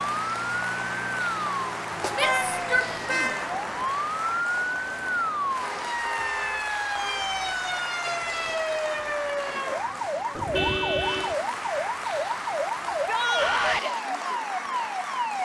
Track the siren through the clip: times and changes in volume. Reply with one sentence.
You can hear the siren from 0.0 to 15.4 s, at a steady volume.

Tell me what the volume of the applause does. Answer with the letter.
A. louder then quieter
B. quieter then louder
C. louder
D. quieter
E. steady
E.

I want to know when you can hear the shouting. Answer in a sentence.
The shouting can be heard from 2.1 to 3.4 s and from 12.9 to 13.9 s.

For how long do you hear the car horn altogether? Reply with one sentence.
The car horn can be heard for 4 seconds in total.